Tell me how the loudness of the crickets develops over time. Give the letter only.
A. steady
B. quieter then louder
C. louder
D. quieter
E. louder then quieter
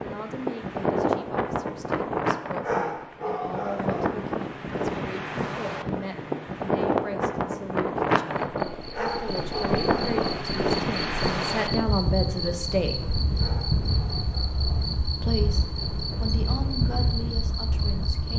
A.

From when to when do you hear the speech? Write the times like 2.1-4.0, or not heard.
0.0-12.9, 15.2-18.3.